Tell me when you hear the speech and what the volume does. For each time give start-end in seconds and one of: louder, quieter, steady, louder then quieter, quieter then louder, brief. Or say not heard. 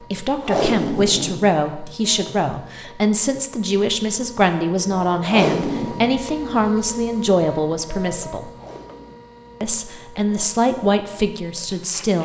0.1-8.5 steady
9.6-12.1 brief.